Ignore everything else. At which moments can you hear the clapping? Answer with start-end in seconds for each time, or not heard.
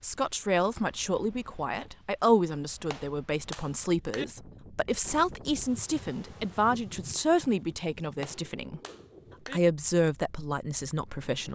2.9-4.2, 8.2-9.6.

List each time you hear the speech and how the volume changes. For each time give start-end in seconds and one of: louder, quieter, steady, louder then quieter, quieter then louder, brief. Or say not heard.
0.0-8.8 steady
9.5-11.4 brief.